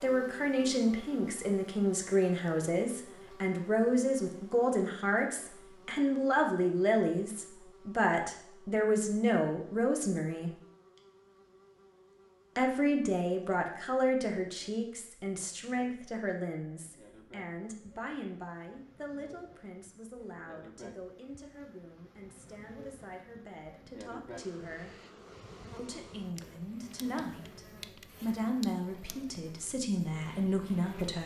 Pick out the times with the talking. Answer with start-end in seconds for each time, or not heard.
0.0-10.5, 12.6-24.9, 25.8-27.6, 28.2-31.2.